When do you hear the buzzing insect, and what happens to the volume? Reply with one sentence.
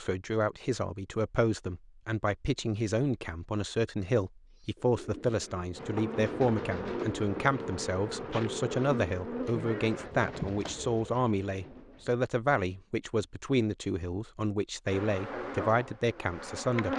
You can hear the buzzing insect from 5.8 to 10.1 s, at a steady volume; and briefly from 14.8 to 16.9 s.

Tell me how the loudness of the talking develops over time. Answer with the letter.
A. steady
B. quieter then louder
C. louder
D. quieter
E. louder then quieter
A.